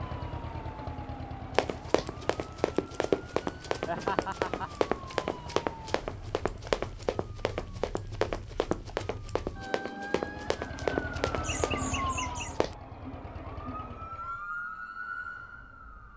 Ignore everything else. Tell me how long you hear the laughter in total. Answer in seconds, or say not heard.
2 s.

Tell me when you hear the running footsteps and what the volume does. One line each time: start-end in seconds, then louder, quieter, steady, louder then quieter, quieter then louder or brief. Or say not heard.
1.6-12.8 steady.